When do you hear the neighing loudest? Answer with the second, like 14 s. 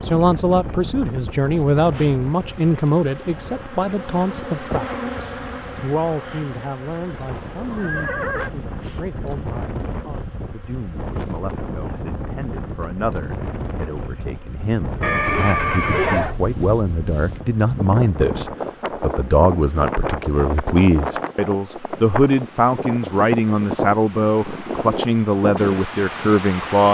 16 s.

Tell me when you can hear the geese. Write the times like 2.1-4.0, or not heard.
4.3-5.8.